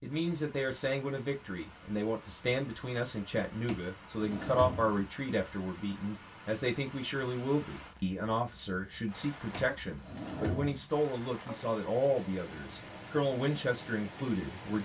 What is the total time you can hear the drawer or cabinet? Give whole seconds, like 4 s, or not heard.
3 s.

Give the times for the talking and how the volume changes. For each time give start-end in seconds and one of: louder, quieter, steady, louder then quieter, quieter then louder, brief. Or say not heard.
0.0-14.7 steady.